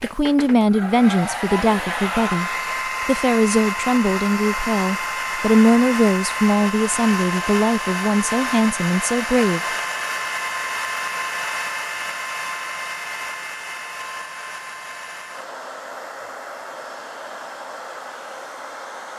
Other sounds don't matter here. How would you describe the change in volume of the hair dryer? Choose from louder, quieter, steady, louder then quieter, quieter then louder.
quieter.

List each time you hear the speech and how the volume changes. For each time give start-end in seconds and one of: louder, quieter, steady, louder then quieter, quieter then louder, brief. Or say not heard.
0.0-9.6 steady.